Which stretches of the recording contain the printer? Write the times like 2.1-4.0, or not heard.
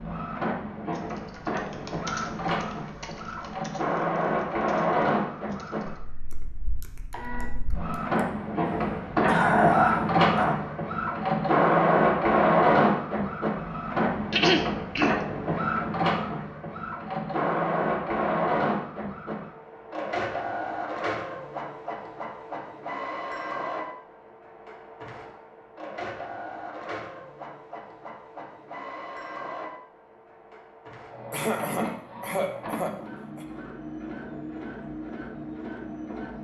0.0-36.3.